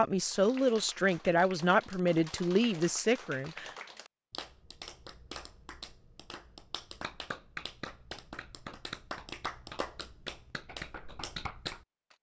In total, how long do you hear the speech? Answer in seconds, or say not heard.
4 s.